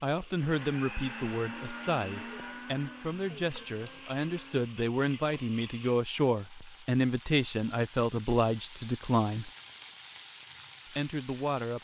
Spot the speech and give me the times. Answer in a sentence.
You can hear the speech from 0.0 to 9.5 s and from 10.9 to 11.8 s.